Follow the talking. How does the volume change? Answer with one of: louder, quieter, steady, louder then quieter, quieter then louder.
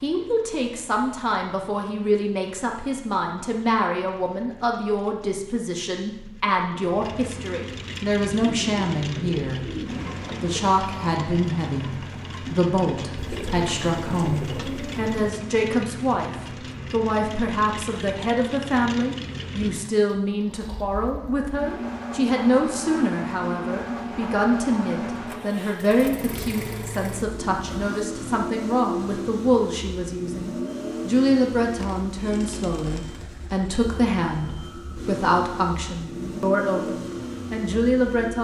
steady.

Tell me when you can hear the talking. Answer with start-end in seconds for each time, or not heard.
0.0-9.6, 10.2-38.3.